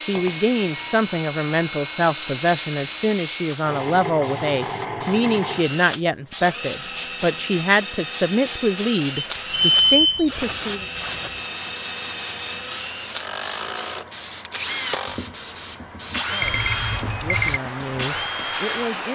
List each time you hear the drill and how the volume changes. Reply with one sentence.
You can hear the drill from 0.0 to 19.1 s, at a steady volume.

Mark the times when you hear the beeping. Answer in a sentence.
The beeping can be heard from 0.1 to 1.2 s, from 9.2 to 10.2 s and from 16.4 to 17.6 s.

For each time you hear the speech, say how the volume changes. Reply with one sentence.
The speech can be heard from 0.0 to 10.8 s, at a steady volume; and briefly from 16.1 to 19.1 s.